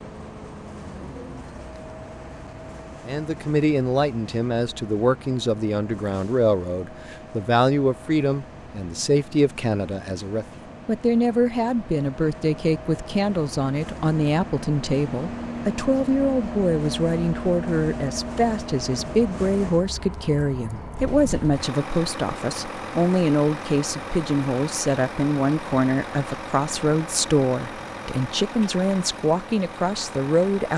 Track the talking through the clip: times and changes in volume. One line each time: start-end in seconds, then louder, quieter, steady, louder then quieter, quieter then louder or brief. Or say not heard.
3.0-30.7 steady.